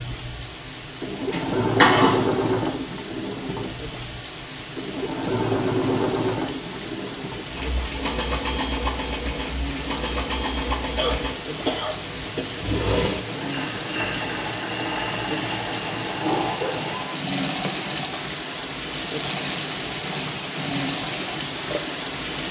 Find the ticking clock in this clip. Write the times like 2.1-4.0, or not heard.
not heard.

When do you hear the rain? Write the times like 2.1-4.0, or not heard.
0.0-22.4.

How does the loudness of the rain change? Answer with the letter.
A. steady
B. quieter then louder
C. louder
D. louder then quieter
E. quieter
C.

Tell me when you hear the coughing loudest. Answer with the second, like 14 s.
2 s.